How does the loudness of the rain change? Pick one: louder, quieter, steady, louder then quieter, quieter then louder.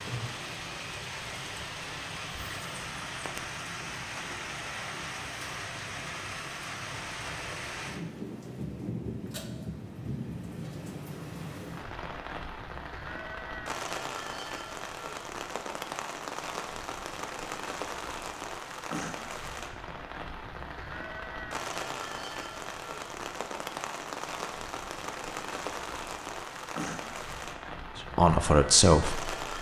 steady.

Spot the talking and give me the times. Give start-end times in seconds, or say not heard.
27.9-29.4.